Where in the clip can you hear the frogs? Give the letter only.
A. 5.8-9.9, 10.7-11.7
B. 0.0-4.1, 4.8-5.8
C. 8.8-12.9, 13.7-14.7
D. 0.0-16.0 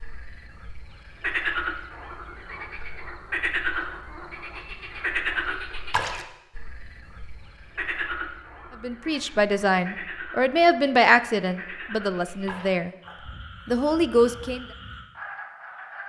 D.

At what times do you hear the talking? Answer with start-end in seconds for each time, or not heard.
8.8-12.9, 13.7-14.7.